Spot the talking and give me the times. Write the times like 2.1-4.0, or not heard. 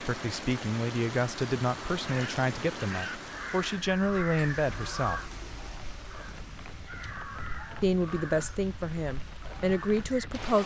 0.0-5.2, 7.8-10.6.